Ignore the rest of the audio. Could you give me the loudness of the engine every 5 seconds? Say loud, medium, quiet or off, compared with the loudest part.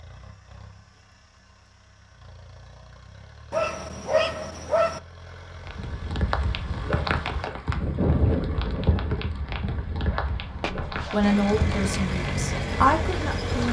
quiet, quiet, loud.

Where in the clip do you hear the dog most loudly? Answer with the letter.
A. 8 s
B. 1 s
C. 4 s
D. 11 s
C.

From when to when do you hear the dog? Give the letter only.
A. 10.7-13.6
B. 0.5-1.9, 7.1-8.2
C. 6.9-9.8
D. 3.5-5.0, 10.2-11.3
D.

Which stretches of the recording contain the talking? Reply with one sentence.
The talking can be heard from 10.7 to 13.6 s.